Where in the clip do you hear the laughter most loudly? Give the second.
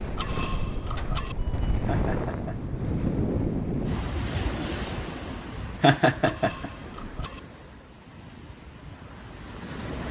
6 s.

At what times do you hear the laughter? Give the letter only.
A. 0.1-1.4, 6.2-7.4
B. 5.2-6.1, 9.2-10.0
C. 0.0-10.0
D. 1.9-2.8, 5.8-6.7
D.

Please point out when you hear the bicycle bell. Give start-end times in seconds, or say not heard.
0.1-1.4, 6.2-7.4.